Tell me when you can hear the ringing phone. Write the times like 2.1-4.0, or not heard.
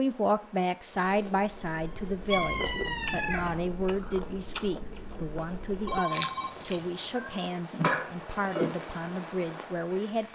5.8-6.5.